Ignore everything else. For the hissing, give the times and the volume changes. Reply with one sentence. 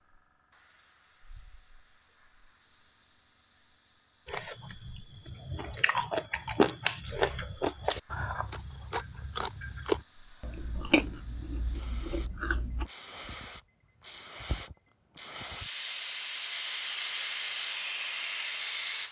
The hissing can be heard from 0.0 to 19.0 s, getting louder.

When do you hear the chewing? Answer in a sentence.
The chewing can be heard from 4.2 to 12.8 s.